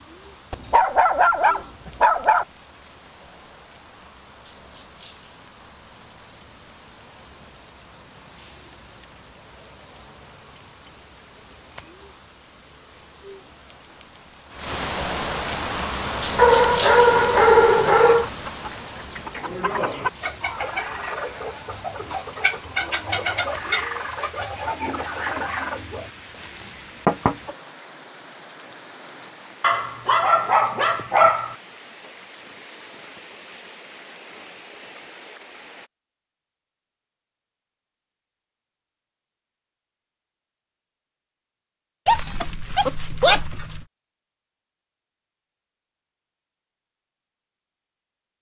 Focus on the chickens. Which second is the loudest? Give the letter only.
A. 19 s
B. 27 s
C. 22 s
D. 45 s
B.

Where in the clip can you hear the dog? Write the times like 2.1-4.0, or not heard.
0.5-2.5, 16.4-18.2, 29.6-31.6, 42.0-43.9.